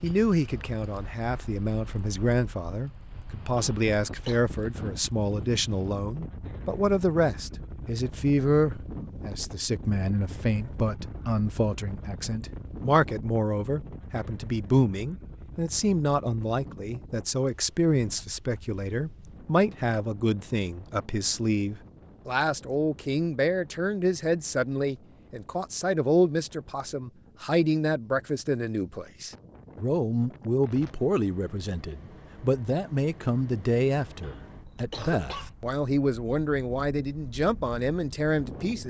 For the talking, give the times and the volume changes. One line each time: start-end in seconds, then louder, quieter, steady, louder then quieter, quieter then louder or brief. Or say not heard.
0.0-38.8 steady.